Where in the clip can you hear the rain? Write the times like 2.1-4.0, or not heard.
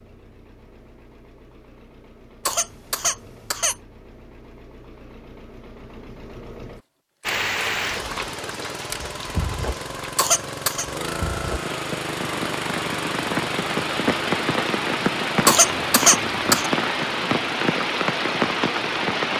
7.2-19.3.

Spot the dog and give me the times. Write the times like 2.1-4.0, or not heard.
not heard.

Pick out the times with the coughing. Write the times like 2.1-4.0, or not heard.
2.5-3.8, 10.2-10.8, 15.4-16.7.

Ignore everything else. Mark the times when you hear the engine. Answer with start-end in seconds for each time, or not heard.
0.0-19.3.